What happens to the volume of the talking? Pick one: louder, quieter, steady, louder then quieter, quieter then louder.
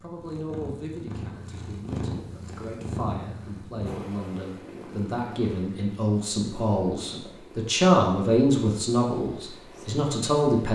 louder.